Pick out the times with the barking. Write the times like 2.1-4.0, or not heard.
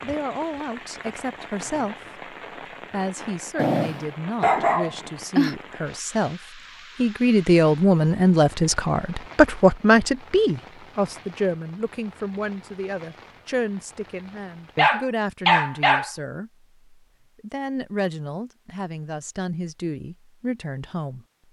3.5-5.5, 14.8-16.1.